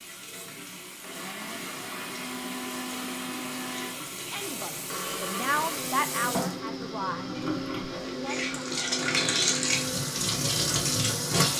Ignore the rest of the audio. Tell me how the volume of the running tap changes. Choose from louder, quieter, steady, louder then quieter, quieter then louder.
louder.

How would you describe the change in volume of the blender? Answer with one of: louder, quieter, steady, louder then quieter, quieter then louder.
steady.